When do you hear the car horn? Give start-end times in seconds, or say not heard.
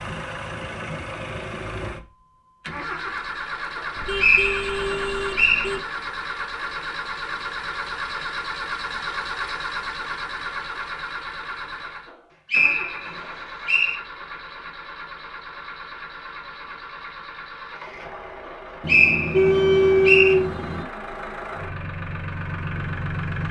4.0-5.8, 18.8-20.9.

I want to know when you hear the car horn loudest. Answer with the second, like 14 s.
20 s.